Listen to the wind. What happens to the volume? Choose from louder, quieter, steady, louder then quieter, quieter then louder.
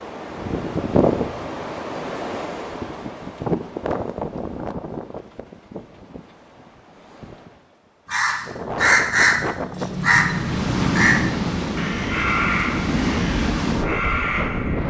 quieter then louder.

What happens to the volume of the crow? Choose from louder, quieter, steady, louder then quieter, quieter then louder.
quieter.